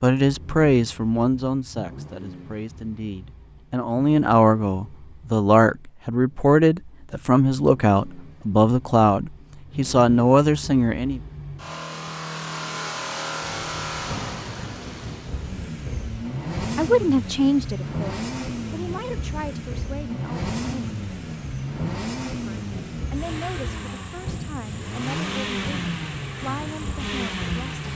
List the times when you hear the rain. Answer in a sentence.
You can hear the rain from 13.4 to 27.9 s.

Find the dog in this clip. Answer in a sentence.
You can't hear the dog here.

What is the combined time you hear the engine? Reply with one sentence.
The engine can be heard for 28 seconds in total.